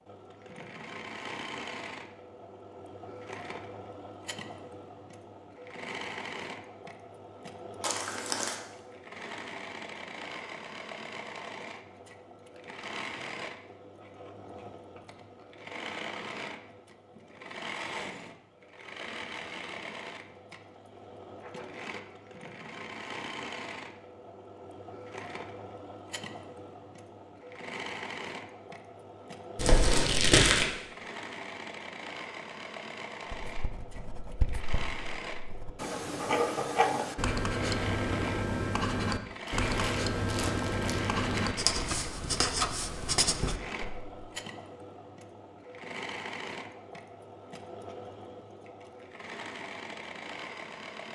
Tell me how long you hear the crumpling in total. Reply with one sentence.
You can hear the crumpling for 4 seconds altogether.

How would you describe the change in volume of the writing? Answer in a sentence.
The loudness of the writing goes up.